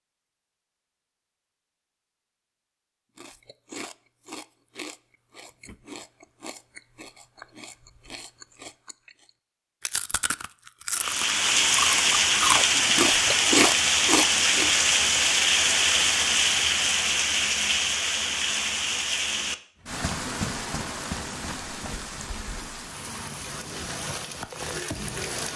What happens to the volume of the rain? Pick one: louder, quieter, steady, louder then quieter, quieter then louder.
quieter.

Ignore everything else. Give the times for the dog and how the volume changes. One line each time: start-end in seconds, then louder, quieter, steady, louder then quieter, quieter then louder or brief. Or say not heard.
not heard.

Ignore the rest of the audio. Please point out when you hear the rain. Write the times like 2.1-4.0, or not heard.
10.9-25.5.